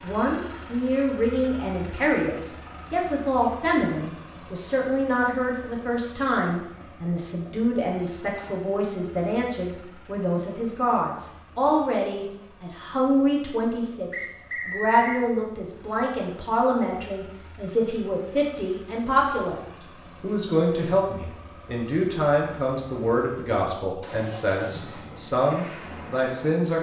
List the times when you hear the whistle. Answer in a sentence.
The whistle can be heard from 14.1 to 15.2 s.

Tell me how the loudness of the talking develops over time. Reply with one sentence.
The volume of the talking stays about the same.